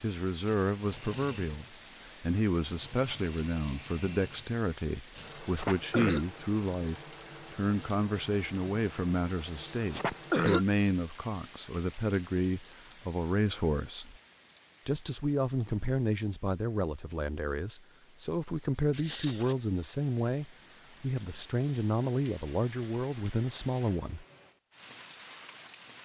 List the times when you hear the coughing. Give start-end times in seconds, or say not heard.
5.2-6.2, 9.6-10.7, 18.9-19.6.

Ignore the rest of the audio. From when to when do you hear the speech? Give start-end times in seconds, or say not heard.
0.0-14.2, 14.8-24.2.